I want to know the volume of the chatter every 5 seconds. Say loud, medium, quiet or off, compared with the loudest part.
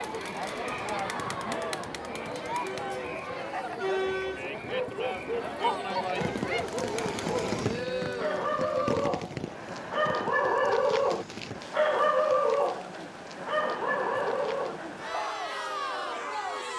loud, loud, medium, loud.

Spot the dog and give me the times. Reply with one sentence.
You can hear the dog from 4.5 to 15.4 s.